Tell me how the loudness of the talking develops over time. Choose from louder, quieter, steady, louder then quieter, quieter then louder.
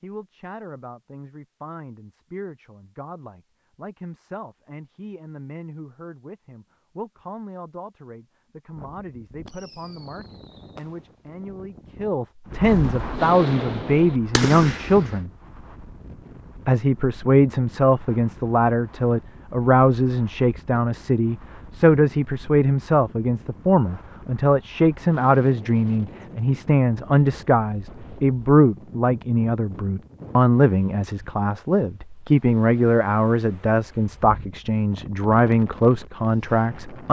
louder.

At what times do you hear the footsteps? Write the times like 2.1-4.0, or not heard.
not heard.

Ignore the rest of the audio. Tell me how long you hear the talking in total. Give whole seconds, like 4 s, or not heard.
36 s.